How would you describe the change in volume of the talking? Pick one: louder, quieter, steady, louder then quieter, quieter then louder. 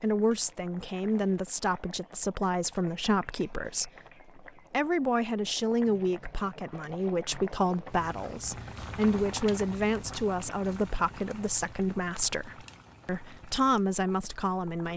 steady.